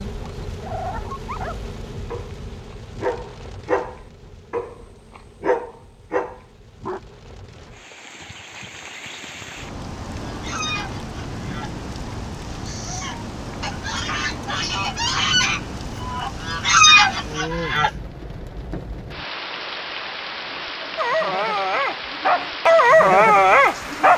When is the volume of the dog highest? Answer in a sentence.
The volume of the dog peaks at 23 seconds.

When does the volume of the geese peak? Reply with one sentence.
The volume of the geese peaks at 17 seconds.